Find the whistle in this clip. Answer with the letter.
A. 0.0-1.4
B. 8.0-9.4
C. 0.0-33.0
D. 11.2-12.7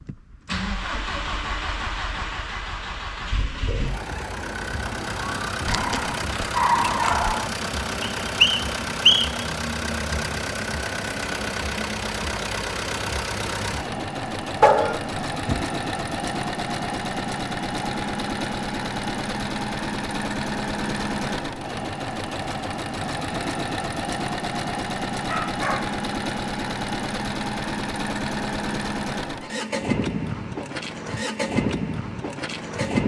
B.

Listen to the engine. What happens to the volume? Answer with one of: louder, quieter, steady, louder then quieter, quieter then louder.
steady.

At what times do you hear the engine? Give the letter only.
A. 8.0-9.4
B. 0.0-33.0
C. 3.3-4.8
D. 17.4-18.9
B.